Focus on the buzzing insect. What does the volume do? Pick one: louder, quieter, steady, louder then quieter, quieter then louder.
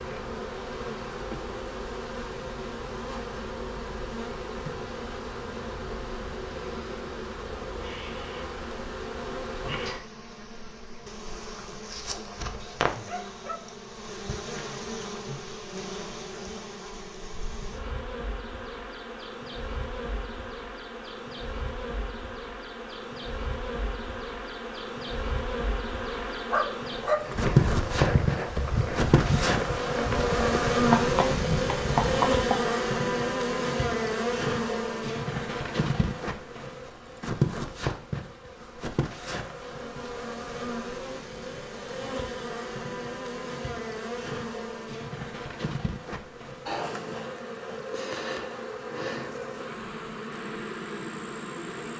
louder then quieter.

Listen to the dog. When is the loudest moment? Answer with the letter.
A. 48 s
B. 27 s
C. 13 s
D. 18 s
B.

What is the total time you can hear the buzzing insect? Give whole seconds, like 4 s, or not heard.
52 s.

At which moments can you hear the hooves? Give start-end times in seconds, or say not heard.
27.2-32.7.